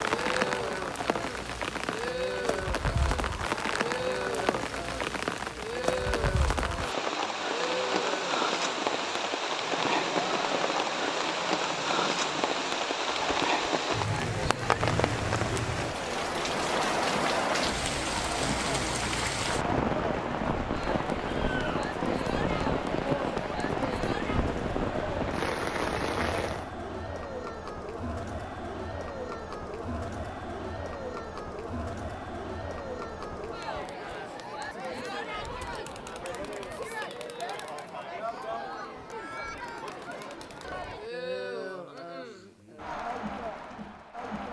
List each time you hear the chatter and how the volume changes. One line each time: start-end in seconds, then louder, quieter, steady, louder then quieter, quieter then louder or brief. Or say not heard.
0.0-44.4 steady.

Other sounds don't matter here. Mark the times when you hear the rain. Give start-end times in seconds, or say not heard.
0.0-26.7.